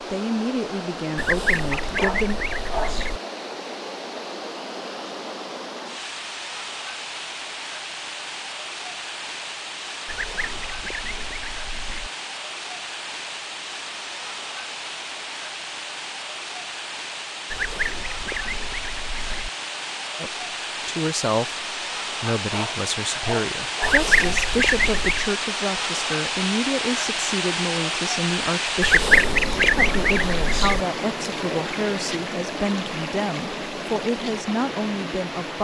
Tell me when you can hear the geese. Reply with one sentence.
You can hear the geese from 1.1 to 3.2 s, from 10.1 to 12.1 s, from 17.5 to 19.5 s, from 23.8 to 25.3 s and from 28.8 to 30.9 s.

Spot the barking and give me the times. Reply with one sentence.
You can hear the barking from 1.8 to 3.0 s and from 22.4 to 24.1 s.